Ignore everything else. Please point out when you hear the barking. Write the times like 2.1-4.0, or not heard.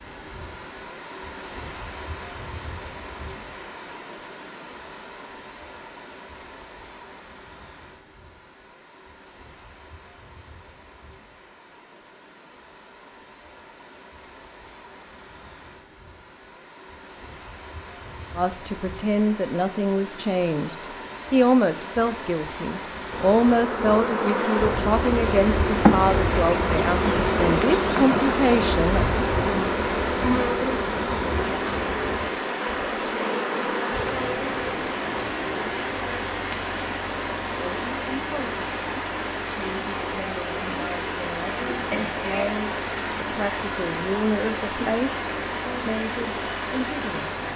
not heard.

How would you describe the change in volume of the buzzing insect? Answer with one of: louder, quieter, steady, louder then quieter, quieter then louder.
quieter.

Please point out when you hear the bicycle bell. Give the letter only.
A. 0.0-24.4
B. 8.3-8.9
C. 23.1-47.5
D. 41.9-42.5
D.